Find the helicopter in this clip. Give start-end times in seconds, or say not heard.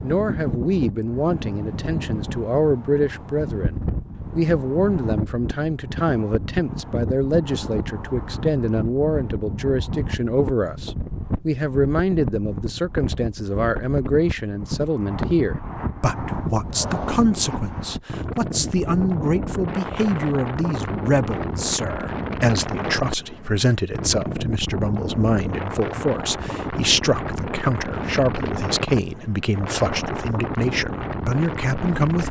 not heard.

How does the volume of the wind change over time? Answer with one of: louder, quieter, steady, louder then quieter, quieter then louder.
steady.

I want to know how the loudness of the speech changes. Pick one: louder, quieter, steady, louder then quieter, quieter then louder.
steady.